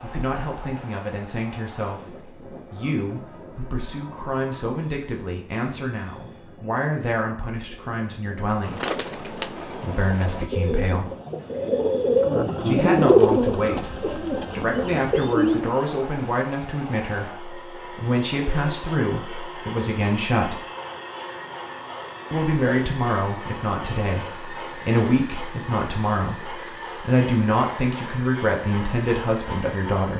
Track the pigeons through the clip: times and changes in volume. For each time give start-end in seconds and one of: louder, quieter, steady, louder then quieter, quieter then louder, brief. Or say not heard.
8.6-15.7 louder then quieter.